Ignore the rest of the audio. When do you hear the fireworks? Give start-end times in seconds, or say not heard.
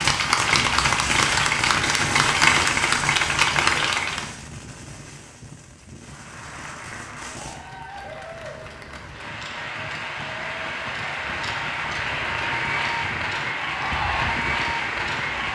0.0-7.5.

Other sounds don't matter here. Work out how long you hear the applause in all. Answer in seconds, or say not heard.
14 s.